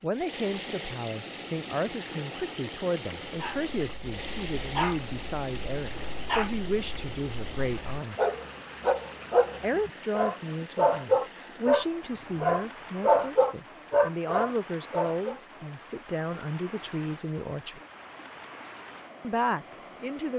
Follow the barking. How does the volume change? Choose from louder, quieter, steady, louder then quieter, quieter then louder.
louder.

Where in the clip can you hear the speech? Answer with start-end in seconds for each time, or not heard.
0.0-8.2, 9.6-17.8, 19.2-20.3.